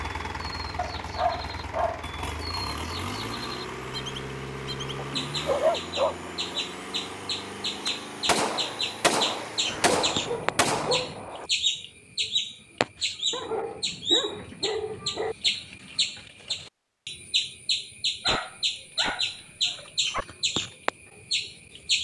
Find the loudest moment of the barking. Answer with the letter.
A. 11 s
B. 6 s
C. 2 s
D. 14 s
B.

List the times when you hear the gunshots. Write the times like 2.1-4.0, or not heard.
7.8-11.5.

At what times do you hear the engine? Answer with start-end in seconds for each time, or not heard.
0.0-10.6.